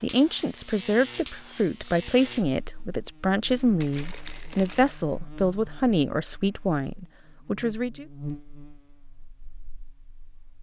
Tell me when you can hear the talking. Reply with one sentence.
You can hear the talking from 0.0 to 8.1 s.